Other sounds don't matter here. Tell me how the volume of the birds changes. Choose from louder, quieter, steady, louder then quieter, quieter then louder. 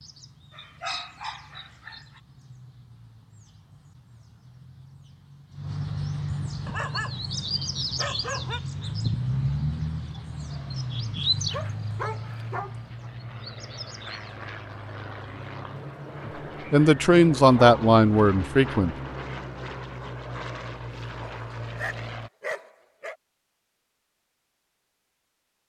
louder then quieter.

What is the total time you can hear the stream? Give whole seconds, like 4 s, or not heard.
not heard.